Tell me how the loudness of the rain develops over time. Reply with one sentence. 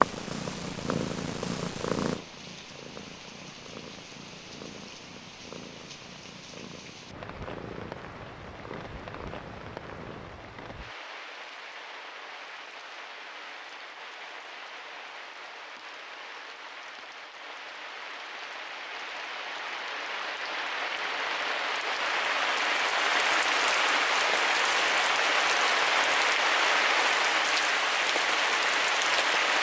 The volume of the rain goes up.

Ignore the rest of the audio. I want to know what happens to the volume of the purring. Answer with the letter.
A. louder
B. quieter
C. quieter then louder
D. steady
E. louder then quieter
B.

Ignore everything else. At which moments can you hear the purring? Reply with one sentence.
You can hear the purring from 0.0 to 10.3 s.